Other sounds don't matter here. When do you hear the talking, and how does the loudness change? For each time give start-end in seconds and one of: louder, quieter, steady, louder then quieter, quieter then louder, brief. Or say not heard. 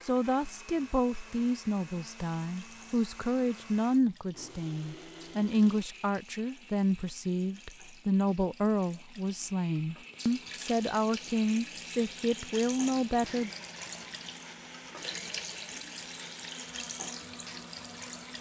0.0-13.5 steady.